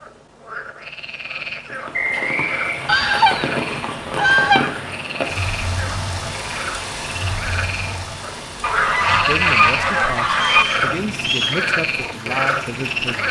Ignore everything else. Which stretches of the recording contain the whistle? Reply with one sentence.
The whistle can be heard from 1.9 to 2.8 s and from 10.4 to 11.6 s.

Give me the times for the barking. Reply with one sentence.
The barking can't be heard in this clip.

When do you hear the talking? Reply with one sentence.
The talking can be heard from 9.1 to 13.2 s.